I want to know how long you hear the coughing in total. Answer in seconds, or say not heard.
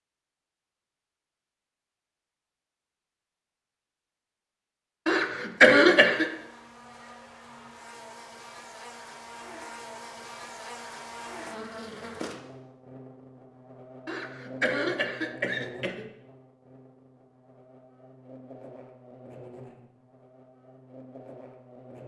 3 s.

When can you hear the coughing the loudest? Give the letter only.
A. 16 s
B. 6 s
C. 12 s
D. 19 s
B.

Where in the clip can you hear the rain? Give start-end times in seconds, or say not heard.
not heard.